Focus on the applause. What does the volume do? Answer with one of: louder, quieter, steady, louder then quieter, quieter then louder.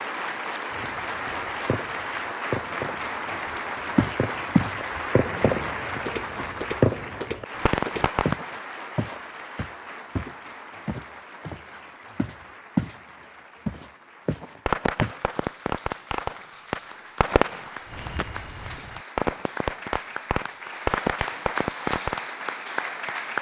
quieter then louder.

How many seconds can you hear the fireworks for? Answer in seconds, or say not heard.
15 s.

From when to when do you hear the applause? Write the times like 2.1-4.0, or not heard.
0.0-23.3.